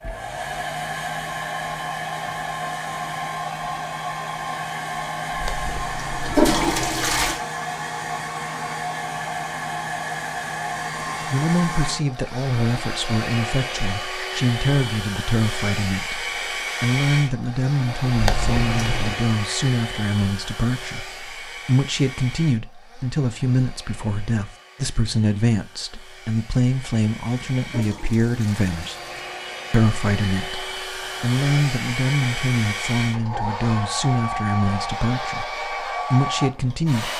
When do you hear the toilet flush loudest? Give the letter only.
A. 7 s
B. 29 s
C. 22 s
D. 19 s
A.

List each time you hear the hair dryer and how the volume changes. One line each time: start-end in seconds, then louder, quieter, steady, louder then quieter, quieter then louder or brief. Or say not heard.
0.0-37.1 quieter then louder.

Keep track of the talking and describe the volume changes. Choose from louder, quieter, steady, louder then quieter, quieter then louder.
steady.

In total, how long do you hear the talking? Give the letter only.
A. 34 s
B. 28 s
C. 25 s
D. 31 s
C.